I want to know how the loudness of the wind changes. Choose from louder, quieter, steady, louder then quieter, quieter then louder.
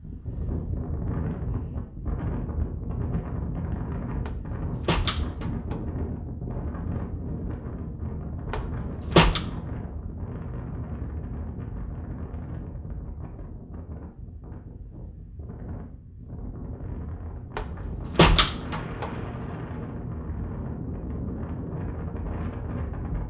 quieter then louder.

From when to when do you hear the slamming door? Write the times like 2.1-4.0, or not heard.
4.2-5.8, 8.5-9.4, 17.6-19.1.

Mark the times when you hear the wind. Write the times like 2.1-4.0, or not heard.
0.0-23.2.